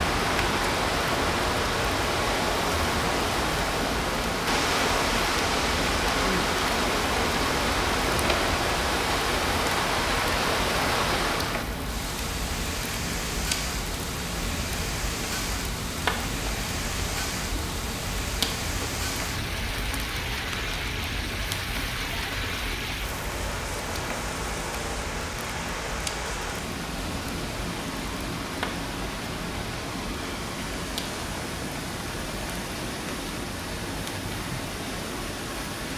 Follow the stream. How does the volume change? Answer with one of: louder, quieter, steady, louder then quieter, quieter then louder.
quieter.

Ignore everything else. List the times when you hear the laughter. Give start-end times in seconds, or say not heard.
not heard.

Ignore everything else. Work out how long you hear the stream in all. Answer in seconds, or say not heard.
36 s.